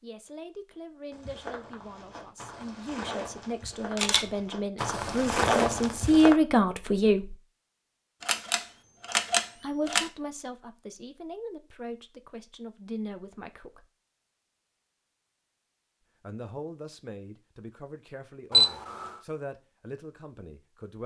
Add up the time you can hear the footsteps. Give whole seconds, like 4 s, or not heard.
5 s.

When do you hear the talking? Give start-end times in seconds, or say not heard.
0.0-7.3, 9.6-13.9, 16.2-21.0.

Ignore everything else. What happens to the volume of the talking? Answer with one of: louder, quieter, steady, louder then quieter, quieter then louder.
louder then quieter.